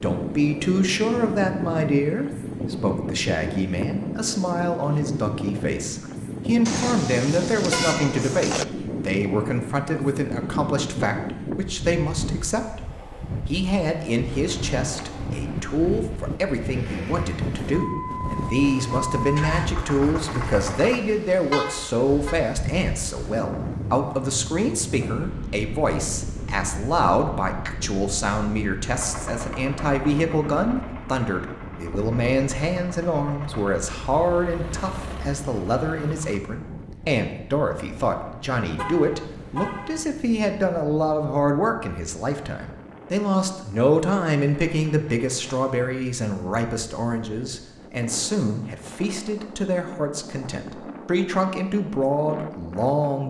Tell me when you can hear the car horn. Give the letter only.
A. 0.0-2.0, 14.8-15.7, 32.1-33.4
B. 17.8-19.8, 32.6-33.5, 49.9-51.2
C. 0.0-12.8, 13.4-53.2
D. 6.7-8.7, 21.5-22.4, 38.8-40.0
D.